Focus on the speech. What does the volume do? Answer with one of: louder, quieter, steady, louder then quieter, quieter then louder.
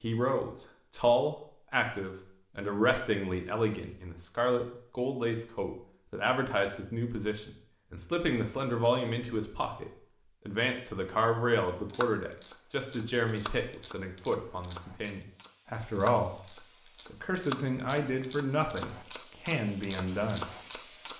steady.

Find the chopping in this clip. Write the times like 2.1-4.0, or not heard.
11.8-21.1.